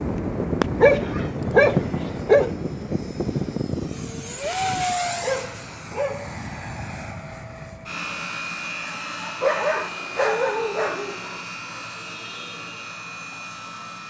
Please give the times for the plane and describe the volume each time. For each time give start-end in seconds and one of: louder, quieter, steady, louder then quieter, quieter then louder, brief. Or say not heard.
0.0-14.0 quieter.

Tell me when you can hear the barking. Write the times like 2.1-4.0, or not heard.
0.8-2.5, 5.0-6.4, 9.4-11.4.